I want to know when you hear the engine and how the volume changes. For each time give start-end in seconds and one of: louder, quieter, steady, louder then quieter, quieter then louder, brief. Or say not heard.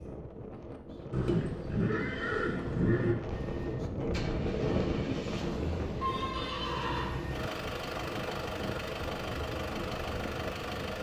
3.3-10.9 louder.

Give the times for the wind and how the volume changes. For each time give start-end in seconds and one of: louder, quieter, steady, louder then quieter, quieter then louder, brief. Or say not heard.
0.0-10.9 louder then quieter.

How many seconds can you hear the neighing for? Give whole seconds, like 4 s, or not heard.
3 s.